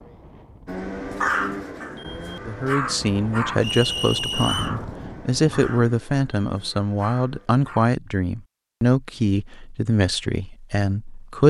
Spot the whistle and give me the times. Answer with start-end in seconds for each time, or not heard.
3.6-4.8.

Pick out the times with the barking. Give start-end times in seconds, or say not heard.
0.7-7.9.